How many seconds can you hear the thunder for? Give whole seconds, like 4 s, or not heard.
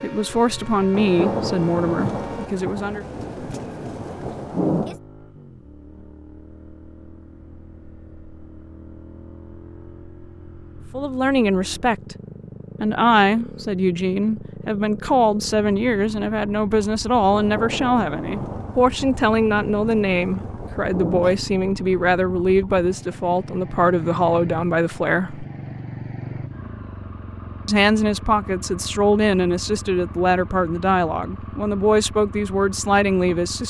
8 s.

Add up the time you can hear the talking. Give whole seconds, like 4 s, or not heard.
23 s.